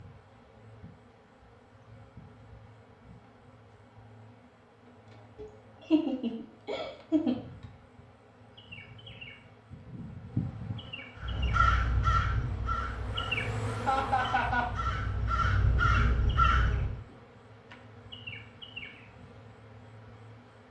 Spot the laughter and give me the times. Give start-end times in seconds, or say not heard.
5.3-7.3, 13.8-14.7.